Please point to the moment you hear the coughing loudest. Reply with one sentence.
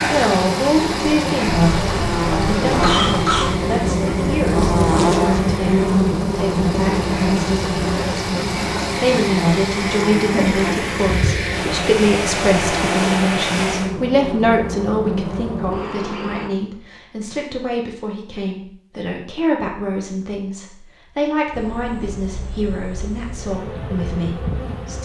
The volume of the coughing peaks at 3 seconds.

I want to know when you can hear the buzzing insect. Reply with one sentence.
You can hear the buzzing insect from 0.0 to 16.5 s and from 21.5 to 25.0 s.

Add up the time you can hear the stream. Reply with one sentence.
You can hear the stream for 14 seconds altogether.